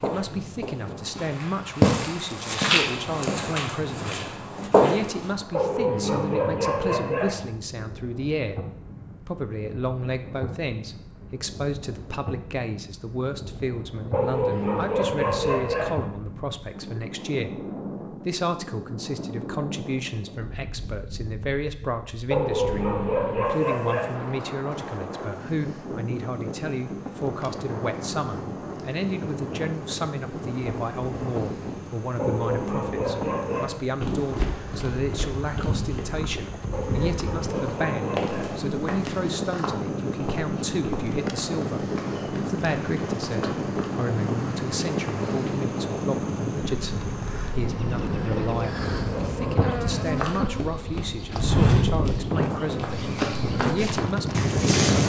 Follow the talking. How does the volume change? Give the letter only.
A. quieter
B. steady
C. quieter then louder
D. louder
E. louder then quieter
B.